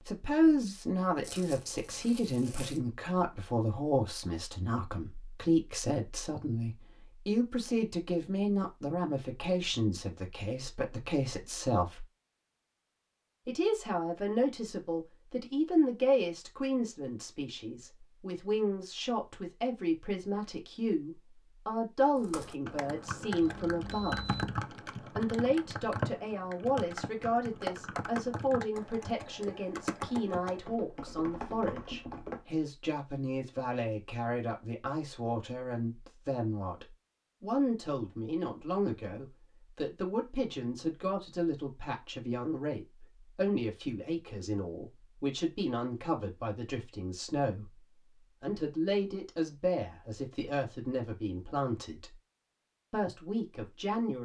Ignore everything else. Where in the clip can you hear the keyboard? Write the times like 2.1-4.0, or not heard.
22.1-32.4.